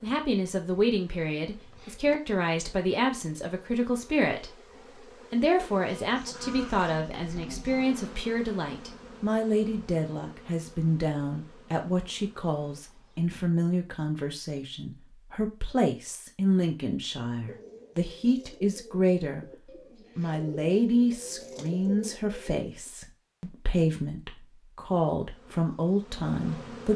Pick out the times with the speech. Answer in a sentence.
The speech can be heard from 0.0 to 19.4 s and from 20.1 to 26.9 s.